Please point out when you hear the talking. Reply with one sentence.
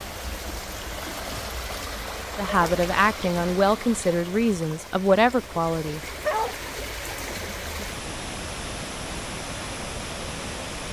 The talking can be heard from 2.4 to 6.0 s.